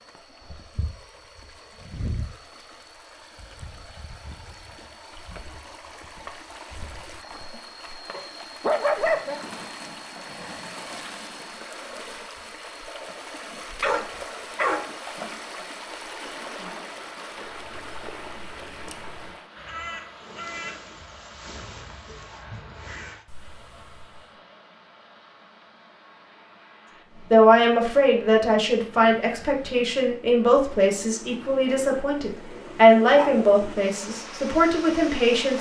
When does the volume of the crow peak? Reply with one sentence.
The volume of the crow peaks at 21 seconds.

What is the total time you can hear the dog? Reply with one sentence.
The dog can be heard for 3 seconds in total.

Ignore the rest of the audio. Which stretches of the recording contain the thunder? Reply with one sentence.
You can't hear the thunder here.